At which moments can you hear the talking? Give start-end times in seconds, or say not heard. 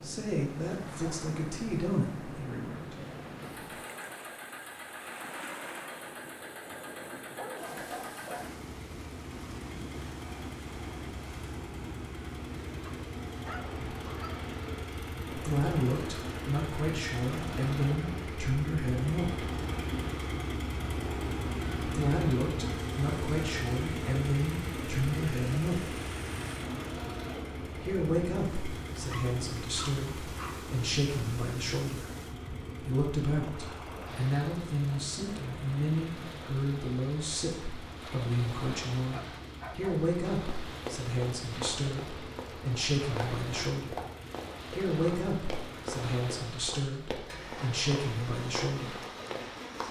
0.0-3.0, 15.3-19.5, 21.9-26.0, 27.8-32.1, 32.8-44.0, 44.7-49.0.